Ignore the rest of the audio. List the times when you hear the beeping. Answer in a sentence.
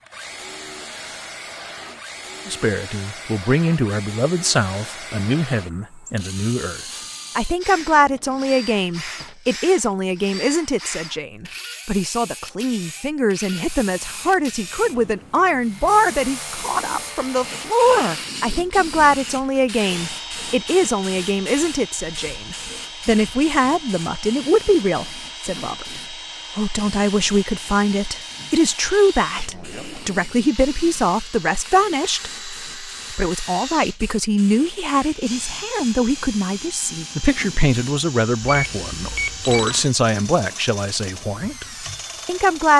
The beeping can be heard from 38.4 to 39.9 s.